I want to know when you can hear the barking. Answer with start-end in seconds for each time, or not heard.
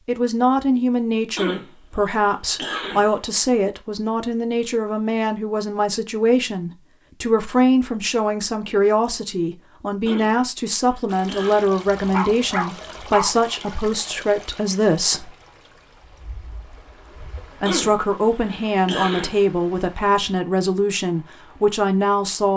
11.9-13.4.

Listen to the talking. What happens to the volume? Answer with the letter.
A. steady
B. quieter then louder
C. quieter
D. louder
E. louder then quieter
A.